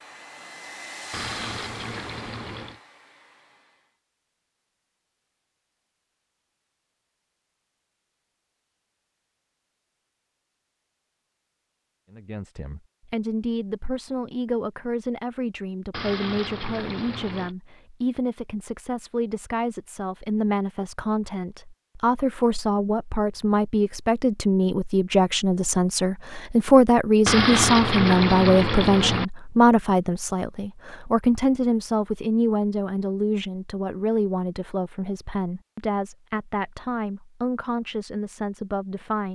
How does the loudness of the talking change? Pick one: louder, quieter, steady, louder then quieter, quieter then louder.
louder then quieter.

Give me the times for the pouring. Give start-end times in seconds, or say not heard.
1.1-2.8, 15.9-17.6, 27.2-29.2.